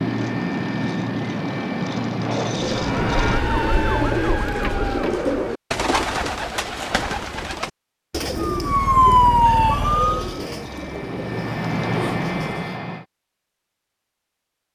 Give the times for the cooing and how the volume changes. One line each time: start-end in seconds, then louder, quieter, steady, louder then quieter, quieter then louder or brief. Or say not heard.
2.5-12.8 quieter.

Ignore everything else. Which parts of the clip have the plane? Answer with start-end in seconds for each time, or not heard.
0.0-3.5, 8.1-13.1.